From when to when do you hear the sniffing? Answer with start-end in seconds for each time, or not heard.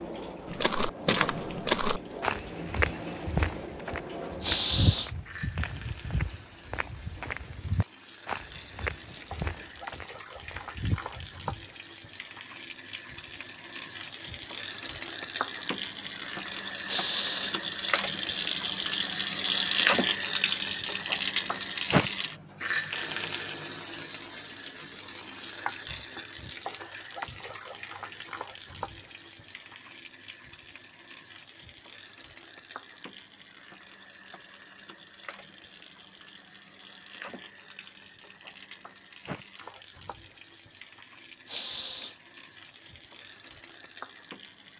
4.4-5.1, 16.9-17.6, 41.5-42.1.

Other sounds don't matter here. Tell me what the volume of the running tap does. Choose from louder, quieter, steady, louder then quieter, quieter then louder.
louder then quieter.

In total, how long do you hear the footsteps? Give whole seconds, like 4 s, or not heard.
11 s.